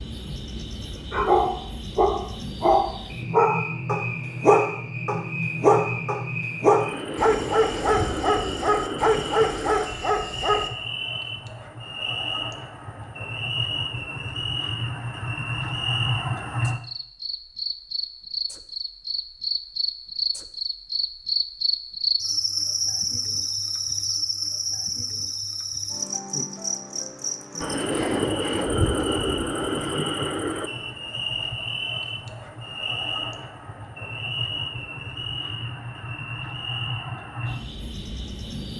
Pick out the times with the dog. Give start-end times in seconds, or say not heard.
1.1-10.7.